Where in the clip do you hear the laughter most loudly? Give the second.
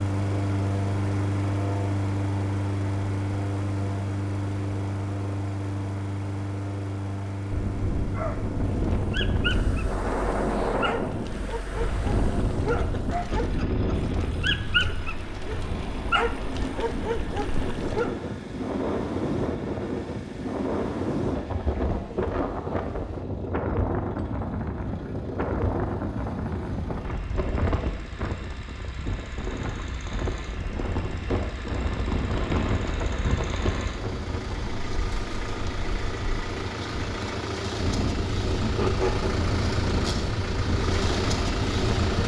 39 s.